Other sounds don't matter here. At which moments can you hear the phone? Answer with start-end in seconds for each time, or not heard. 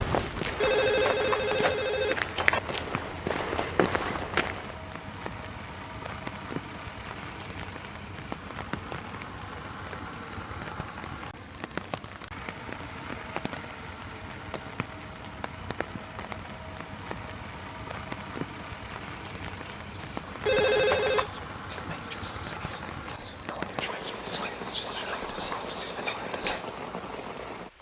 0.6-2.6, 20.4-21.3.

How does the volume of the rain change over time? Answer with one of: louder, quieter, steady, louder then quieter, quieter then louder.
steady.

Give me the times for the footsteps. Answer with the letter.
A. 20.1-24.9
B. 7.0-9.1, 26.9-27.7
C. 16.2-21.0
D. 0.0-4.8
D.